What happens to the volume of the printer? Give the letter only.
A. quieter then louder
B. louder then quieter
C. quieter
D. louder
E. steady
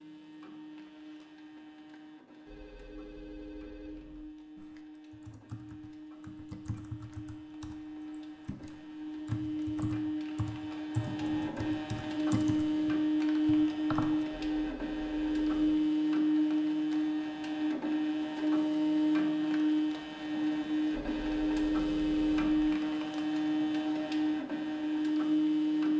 D.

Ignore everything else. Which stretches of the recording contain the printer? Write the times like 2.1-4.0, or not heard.
0.0-25.9.